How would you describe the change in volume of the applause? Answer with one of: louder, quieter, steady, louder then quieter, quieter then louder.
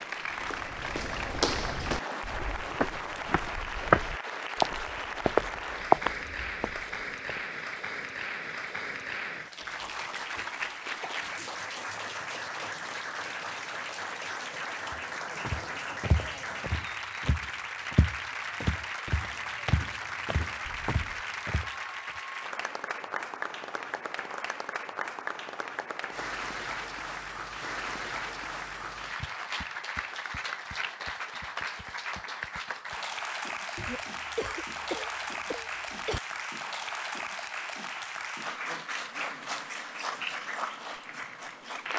steady.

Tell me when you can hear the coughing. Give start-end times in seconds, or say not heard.
9.6-11.5, 20.6-21.2, 33.8-36.2.